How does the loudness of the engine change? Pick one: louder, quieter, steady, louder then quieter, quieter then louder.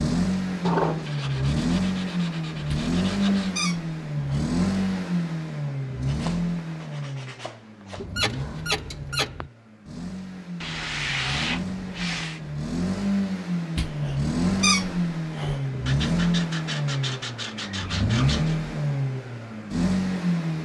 quieter then louder.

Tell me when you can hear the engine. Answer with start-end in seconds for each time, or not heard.
0.0-20.5.